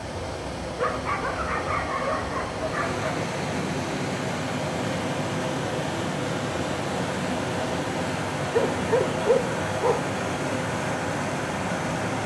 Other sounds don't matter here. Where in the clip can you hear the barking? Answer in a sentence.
The barking can be heard from 0.8 to 3.2 s and from 8.5 to 10.2 s.